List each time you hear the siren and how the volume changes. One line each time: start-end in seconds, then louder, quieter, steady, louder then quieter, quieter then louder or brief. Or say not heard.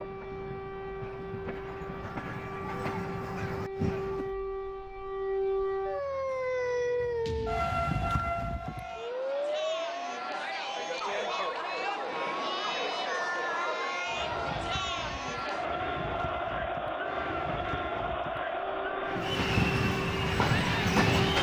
0.0-21.3 louder then quieter.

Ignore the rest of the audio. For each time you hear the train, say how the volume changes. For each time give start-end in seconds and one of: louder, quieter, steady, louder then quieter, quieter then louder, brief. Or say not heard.
0.0-4.3 louder
19.1-21.3 brief.